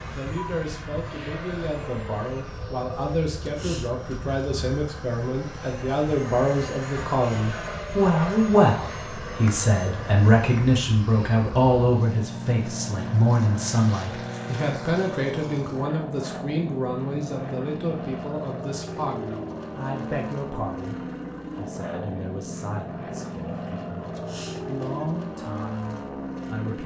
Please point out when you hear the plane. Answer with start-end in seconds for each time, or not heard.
0.0-26.8.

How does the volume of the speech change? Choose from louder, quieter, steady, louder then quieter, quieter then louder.
louder then quieter.